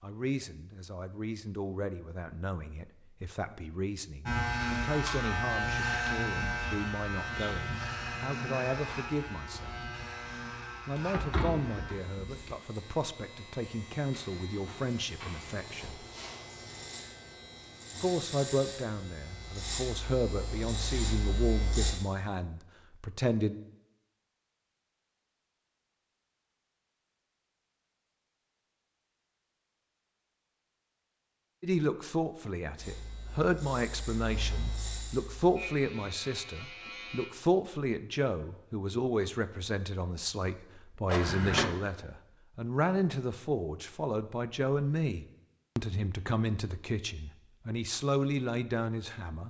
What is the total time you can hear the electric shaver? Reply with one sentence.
The electric shaver can be heard for 22 seconds in total.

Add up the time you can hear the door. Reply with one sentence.
The door can be heard for 2 seconds in total.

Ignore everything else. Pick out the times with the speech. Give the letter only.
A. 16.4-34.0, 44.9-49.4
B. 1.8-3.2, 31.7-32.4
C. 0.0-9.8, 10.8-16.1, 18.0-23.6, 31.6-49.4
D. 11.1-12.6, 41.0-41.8
C.